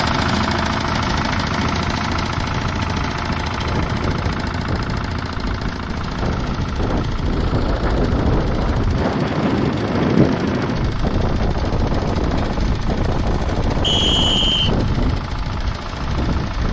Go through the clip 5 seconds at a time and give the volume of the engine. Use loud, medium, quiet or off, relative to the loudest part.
loud, medium, medium, medium.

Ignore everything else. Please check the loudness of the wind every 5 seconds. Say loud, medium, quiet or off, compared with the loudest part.
medium, loud, loud, medium.